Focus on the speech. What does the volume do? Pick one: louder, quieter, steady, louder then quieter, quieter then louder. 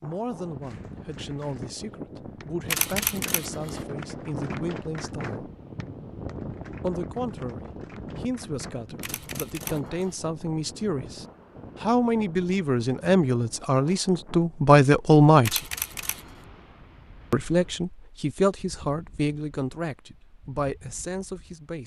louder then quieter.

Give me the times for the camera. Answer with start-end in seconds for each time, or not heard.
2.6-3.9, 9.0-10.2, 15.4-16.4.